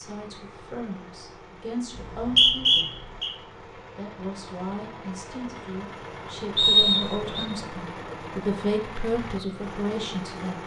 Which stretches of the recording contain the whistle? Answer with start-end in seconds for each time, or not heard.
1.9-3.3, 6.5-7.5.